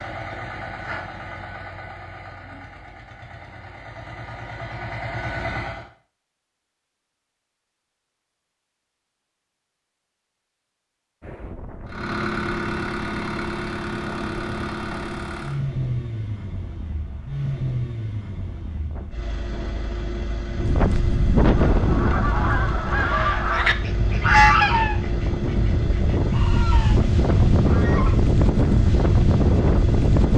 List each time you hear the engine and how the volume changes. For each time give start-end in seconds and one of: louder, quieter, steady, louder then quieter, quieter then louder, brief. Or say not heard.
0.0-5.8 quieter then louder
11.8-30.3 quieter.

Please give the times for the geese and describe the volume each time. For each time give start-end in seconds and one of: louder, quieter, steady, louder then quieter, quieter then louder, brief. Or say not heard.
21.6-28.2 louder then quieter.